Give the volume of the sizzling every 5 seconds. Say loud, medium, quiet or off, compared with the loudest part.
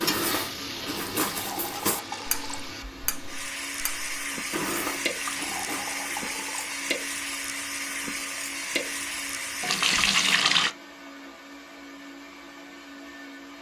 loud, loud, off.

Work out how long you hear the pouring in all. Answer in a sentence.
The pouring can be heard for 4 seconds in total.